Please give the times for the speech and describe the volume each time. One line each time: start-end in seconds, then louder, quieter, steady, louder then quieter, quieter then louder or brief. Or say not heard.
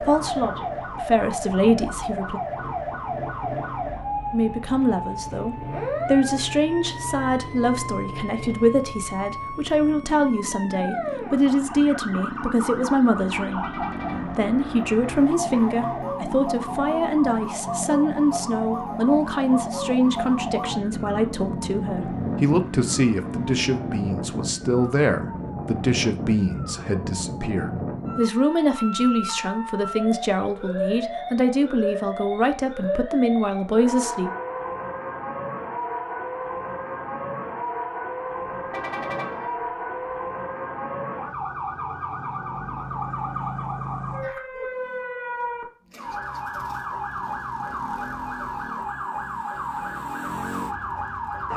0.0-2.4 brief
4.3-34.3 steady.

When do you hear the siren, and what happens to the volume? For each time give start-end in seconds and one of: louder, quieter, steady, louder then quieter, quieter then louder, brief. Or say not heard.
0.0-51.5 steady.